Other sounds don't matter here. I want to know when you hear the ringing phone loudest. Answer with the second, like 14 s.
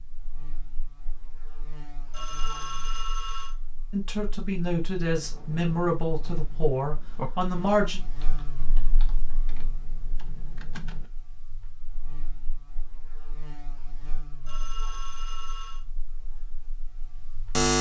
3 s.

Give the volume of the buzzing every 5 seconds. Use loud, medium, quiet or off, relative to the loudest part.
quiet, quiet, quiet, loud.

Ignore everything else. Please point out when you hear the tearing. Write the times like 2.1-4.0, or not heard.
not heard.